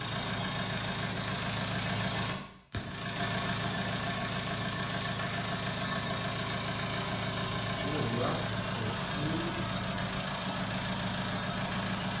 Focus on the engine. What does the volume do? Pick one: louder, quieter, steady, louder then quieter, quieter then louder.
steady.